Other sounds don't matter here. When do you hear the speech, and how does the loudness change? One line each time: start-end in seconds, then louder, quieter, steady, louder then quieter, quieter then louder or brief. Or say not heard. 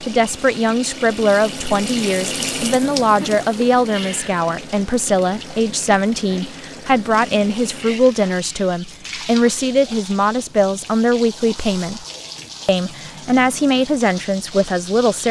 0.0-12.1 steady
12.7-15.2 brief.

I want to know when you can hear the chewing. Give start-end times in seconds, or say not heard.
not heard.